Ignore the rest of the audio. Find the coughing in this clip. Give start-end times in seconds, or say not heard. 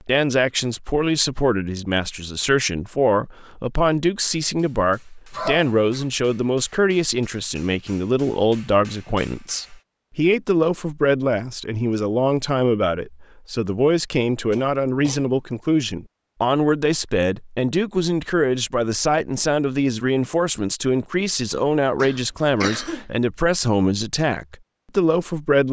5.3-6.0, 14.5-15.3, 21.6-23.1.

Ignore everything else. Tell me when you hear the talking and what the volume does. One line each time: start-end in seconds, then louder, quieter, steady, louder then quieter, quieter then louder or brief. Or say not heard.
0.1-25.6 steady.